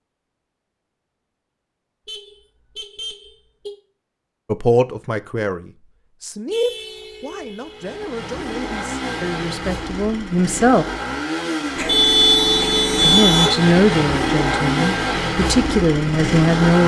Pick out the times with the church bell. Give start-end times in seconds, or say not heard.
not heard.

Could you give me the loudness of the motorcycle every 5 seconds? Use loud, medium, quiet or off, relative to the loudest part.
off, medium, loud, loud.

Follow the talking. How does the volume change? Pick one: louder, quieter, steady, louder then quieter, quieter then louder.
quieter then louder.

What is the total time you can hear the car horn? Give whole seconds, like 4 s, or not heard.
5 s.